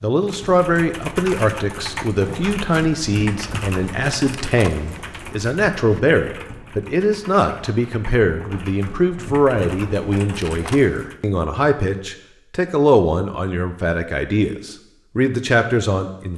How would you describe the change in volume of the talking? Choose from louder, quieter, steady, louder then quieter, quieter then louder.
steady.